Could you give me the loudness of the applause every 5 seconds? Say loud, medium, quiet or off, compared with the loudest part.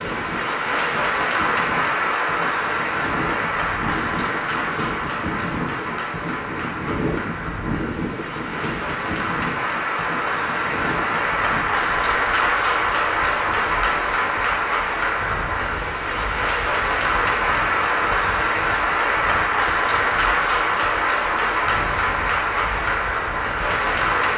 loud, medium, loud, loud, loud.